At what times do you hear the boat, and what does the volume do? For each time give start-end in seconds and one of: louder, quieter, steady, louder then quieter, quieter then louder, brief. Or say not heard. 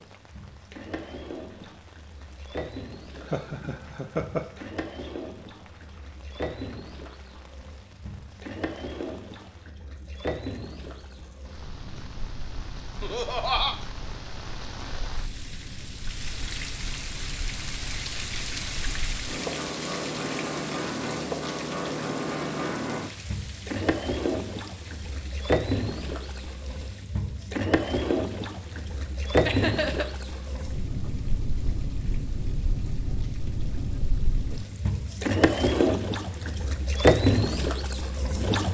0.0-38.6 louder.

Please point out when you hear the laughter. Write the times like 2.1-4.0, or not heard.
3.1-4.7, 13.0-13.8, 29.4-30.1.